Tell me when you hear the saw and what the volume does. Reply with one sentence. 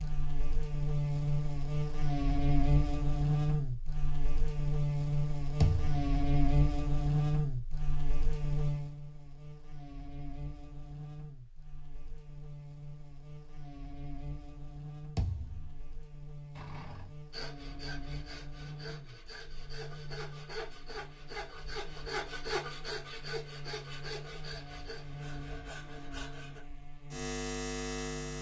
The saw can be heard from 16.6 to 26.6 s, getting louder then quieter.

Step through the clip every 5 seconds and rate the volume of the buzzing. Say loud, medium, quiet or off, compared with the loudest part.
loud, loud, quiet, quiet, quiet, medium.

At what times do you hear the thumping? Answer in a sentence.
You can hear the thumping from 5.6 to 6.1 s and from 15.2 to 15.7 s.